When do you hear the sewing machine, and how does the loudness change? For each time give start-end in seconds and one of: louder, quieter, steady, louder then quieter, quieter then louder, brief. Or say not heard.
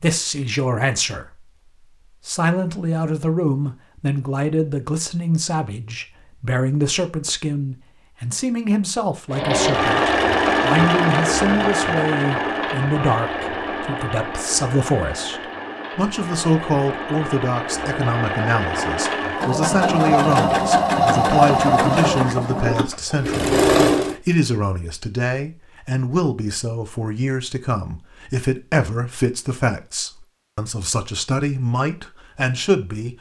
9.3-24.2 quieter then louder.